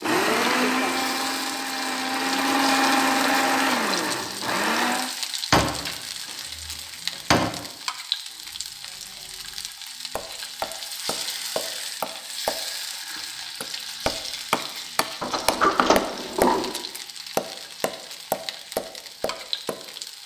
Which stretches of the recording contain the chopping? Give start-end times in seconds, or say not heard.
8.3-19.8.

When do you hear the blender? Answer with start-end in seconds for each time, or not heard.
0.0-5.1.